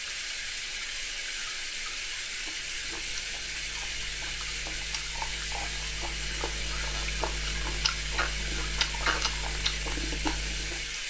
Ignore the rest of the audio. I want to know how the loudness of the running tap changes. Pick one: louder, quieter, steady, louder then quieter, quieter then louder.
steady.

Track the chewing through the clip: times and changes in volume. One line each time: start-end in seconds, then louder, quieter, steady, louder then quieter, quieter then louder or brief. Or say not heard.
2.3-11.0 louder.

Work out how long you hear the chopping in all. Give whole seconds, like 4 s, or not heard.
not heard.